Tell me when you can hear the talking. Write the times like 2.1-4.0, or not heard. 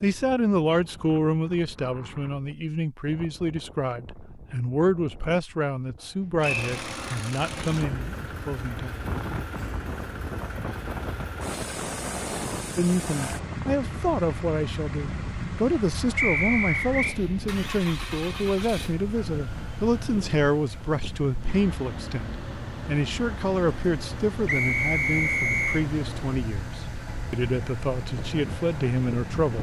0.0-9.1, 12.8-29.5.